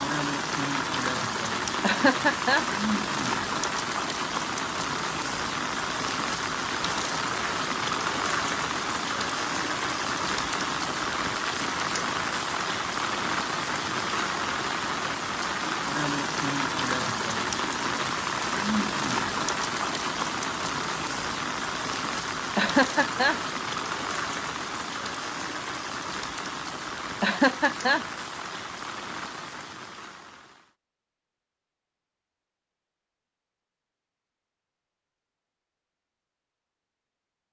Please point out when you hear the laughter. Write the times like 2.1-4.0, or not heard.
1.8-2.6, 22.6-23.4, 27.2-28.1.